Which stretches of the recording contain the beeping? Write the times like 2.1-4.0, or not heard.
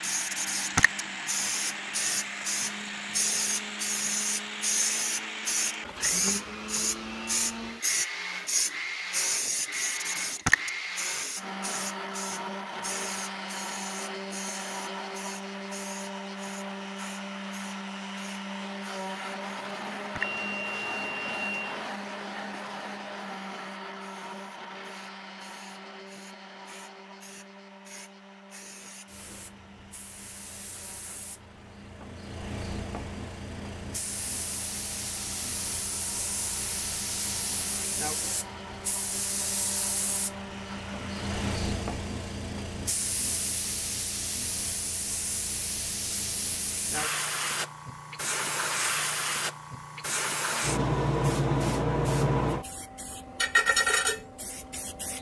20.2-21.6.